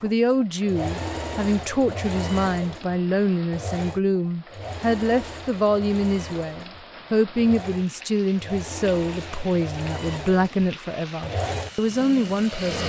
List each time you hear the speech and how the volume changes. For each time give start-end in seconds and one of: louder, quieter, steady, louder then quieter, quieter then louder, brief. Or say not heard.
0.0-12.8 steady.